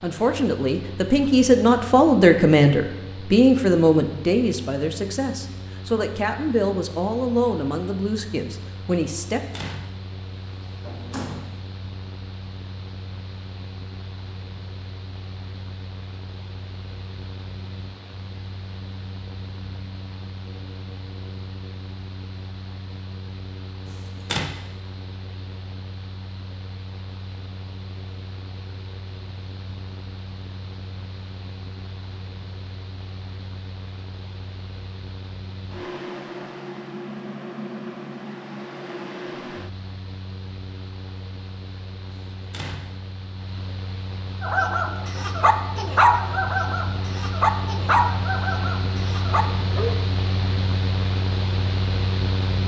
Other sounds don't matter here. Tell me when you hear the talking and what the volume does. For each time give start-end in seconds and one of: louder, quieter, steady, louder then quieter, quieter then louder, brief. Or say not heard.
0.0-9.4 quieter.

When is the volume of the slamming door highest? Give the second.
24 s.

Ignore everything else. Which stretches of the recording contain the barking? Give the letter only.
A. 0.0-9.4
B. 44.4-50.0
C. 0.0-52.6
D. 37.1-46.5
B.